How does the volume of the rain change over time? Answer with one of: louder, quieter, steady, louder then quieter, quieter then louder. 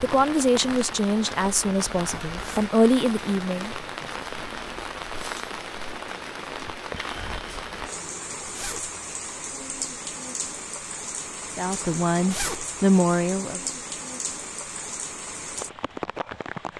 steady.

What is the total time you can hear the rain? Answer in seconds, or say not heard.
17 s.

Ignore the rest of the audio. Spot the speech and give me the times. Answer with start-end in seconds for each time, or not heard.
0.0-3.8, 11.6-13.6.